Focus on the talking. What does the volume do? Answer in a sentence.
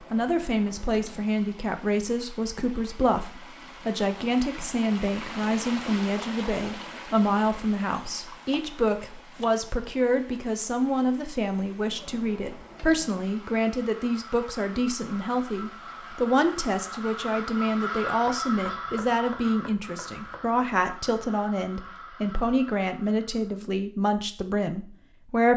The loudness of the talking stays about the same.